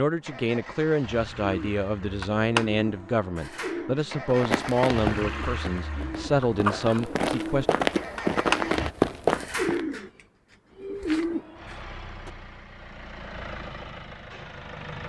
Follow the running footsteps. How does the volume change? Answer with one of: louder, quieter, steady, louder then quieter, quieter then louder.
quieter then louder.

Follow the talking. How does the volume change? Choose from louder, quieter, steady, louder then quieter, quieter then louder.
steady.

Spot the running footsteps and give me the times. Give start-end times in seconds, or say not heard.
4.2-9.8.